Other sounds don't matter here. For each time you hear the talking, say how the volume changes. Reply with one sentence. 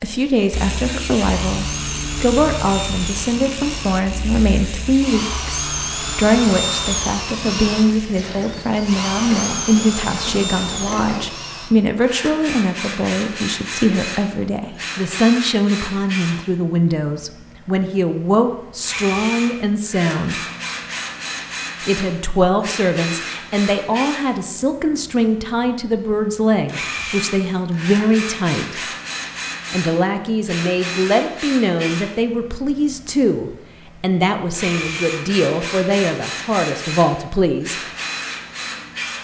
The talking can be heard from 0.0 to 20.4 s, at a steady volume; from 21.9 to 28.8 s, at a steady volume; and from 29.7 to 37.8 s, at a steady volume.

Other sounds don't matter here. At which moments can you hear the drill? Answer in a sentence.
You can hear the drill from 0.1 to 39.2 s.